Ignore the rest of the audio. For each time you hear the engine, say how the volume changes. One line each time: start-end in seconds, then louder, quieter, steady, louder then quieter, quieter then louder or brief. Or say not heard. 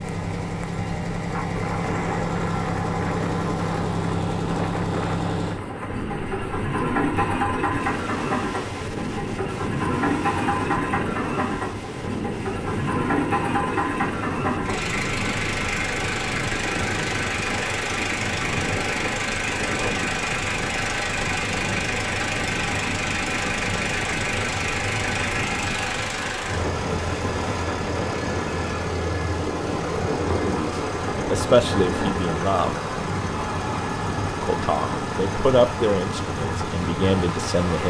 0.0-37.8 steady.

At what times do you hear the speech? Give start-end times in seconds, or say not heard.
30.4-32.8, 34.4-37.8.